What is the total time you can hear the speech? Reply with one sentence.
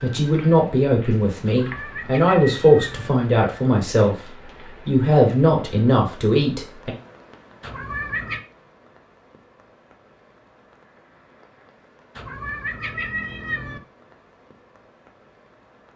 You can hear the speech for 7 seconds altogether.